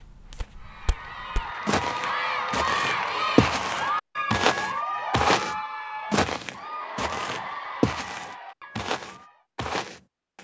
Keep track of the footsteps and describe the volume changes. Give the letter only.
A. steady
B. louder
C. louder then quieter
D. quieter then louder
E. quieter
C.